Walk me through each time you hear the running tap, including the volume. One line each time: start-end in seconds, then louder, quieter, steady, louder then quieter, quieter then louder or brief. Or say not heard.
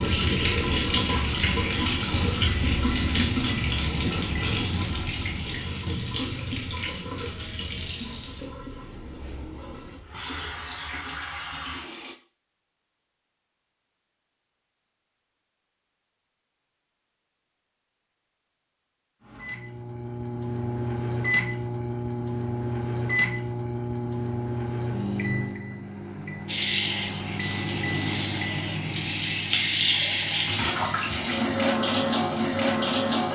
0.0-12.2 quieter
26.4-33.2 louder.